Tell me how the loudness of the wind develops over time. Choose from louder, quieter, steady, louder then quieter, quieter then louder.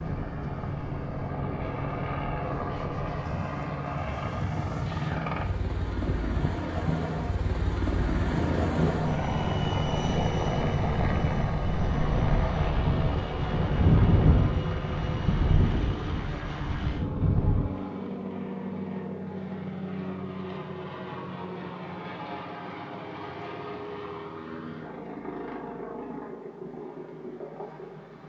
louder.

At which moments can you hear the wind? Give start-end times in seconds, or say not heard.
0.0-17.8.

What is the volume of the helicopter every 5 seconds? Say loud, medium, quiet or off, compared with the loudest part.
loud, loud, loud, loud, medium, medium.